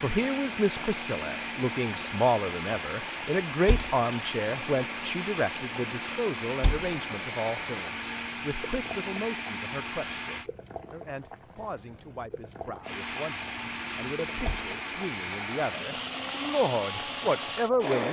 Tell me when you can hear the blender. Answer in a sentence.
You can hear the blender from 0.0 to 10.5 s and from 12.8 to 18.0 s.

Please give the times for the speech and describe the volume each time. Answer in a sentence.
You can hear the speech from 0.0 to 18.0 s, getting quieter then louder.